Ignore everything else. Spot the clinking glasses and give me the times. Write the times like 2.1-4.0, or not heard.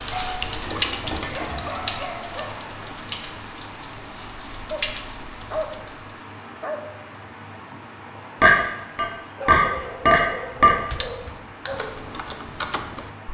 0.6-1.9, 8.4-10.8.